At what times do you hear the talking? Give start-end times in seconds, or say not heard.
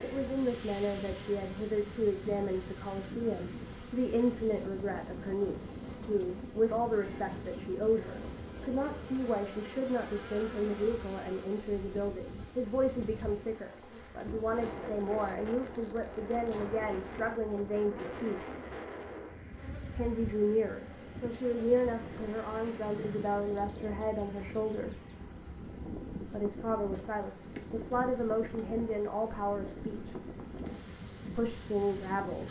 0.0-18.4, 19.9-25.0, 26.3-30.1, 31.4-32.4.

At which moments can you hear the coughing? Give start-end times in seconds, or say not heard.
not heard.